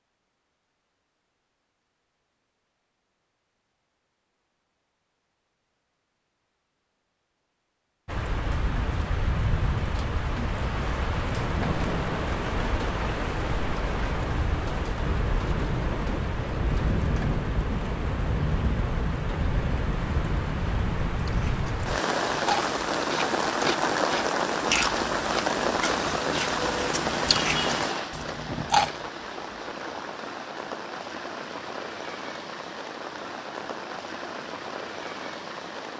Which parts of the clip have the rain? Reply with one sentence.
The rain can be heard from 8.1 to 35.9 s.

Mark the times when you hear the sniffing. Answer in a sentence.
The sniffing can't be heard in this clip.